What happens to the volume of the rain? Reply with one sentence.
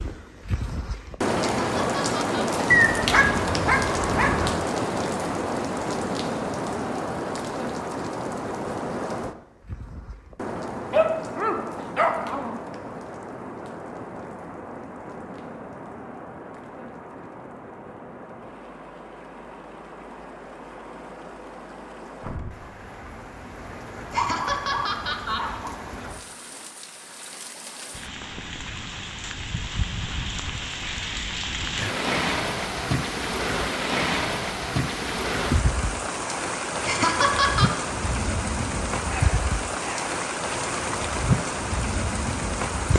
The loudness of the rain goes down, then up.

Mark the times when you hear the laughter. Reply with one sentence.
The laughter can be heard from 1.4 to 2.6 s, from 24.1 to 25.6 s and from 36.9 to 37.7 s.